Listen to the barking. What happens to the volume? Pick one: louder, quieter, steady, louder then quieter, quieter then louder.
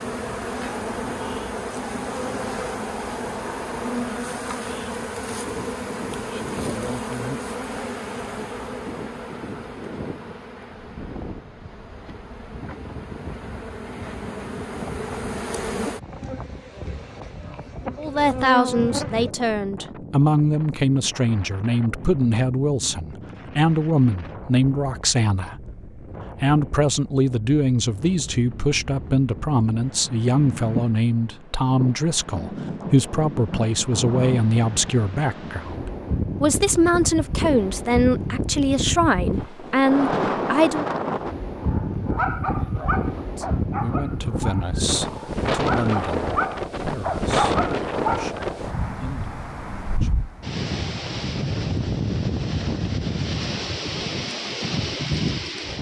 quieter then louder.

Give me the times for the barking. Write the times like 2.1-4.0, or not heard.
41.6-48.4.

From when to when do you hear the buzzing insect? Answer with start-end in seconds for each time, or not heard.
0.0-19.4.